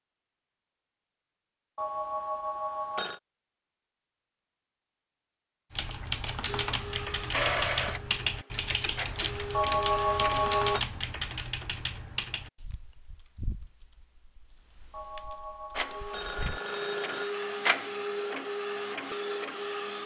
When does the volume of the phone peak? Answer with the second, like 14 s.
10 s.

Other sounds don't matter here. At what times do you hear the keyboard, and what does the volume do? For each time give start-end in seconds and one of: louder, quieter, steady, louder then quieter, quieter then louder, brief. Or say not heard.
5.7-16.6 quieter.